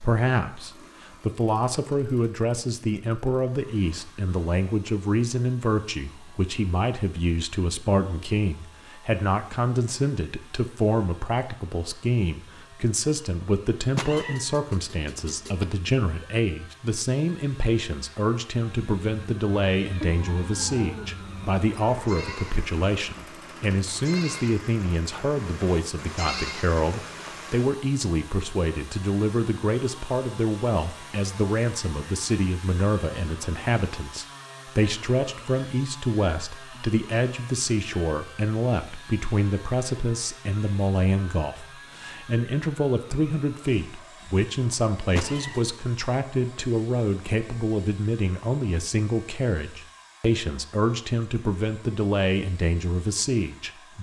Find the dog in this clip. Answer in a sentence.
The dog can't be heard in this clip.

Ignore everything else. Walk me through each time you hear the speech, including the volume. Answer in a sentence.
You can hear the speech from 0.0 to 53.9 s, at a steady volume.